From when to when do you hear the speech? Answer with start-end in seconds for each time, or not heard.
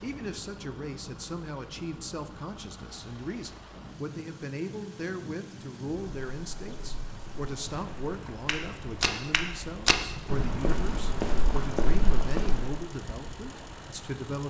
0.0-14.4.